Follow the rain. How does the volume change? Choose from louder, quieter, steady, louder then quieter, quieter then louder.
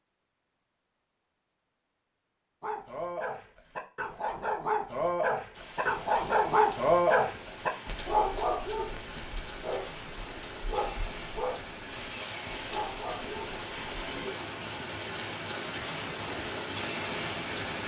louder.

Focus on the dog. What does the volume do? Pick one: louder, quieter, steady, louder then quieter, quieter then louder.
louder then quieter.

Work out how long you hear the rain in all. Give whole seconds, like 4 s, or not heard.
12 s.